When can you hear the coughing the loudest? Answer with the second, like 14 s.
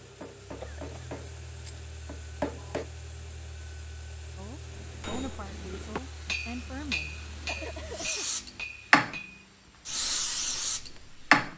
8 s.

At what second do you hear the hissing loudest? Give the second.
11 s.